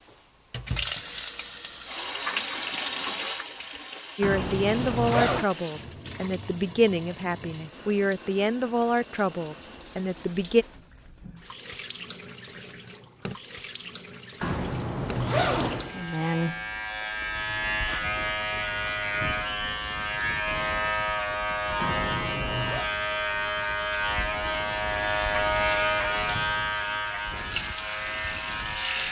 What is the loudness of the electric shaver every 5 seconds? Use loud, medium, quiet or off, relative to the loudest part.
off, off, off, loud, loud, loud.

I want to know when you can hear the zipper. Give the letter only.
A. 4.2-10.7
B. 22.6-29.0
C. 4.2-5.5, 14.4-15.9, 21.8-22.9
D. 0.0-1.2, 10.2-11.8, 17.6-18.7
C.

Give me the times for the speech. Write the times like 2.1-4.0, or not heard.
4.2-10.7.